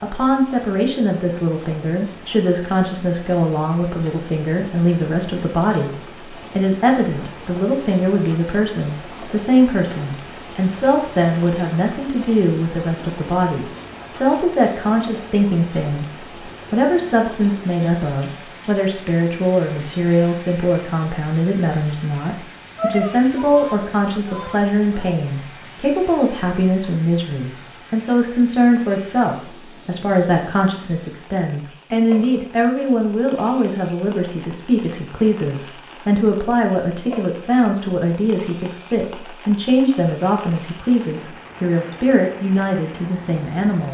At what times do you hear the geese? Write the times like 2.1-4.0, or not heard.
22.8-25.1.